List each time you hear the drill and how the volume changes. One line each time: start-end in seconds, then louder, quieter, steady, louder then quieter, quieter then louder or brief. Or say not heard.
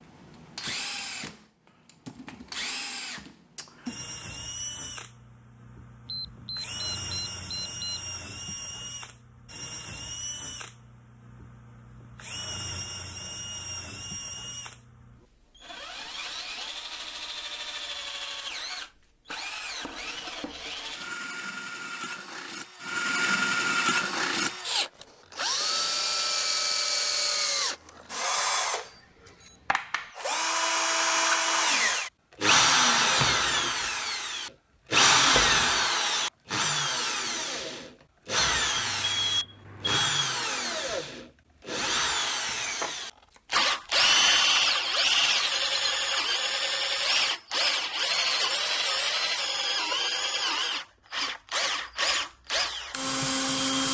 0.0-53.8 louder.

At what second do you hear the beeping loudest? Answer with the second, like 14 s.
39 s.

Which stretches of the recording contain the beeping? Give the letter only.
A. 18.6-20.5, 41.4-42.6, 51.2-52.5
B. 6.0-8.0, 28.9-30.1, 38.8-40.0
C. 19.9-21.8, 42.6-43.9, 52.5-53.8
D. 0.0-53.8
B.